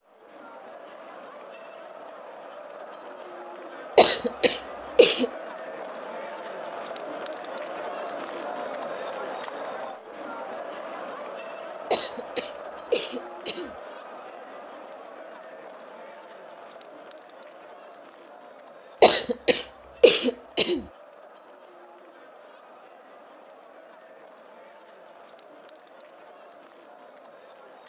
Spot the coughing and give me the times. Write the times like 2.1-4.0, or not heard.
4.0-5.3, 11.9-13.7, 19.0-20.9.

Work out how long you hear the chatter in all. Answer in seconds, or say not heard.
28 s.